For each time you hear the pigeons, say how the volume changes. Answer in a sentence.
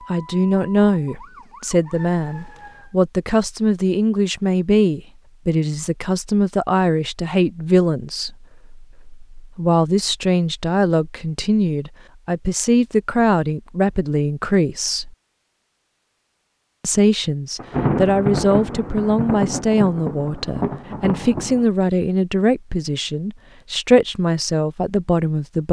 The pigeons can't be heard in this clip.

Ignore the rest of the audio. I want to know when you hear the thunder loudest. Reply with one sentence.
The volume of the thunder peaks at 18 seconds.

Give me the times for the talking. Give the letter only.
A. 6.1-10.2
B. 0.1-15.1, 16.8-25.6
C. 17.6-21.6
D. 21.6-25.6
B.